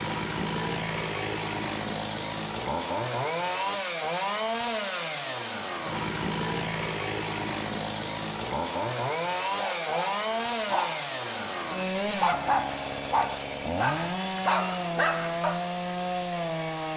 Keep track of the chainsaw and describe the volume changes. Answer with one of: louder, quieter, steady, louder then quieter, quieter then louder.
steady.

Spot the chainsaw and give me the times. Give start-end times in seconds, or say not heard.
0.0-16.9.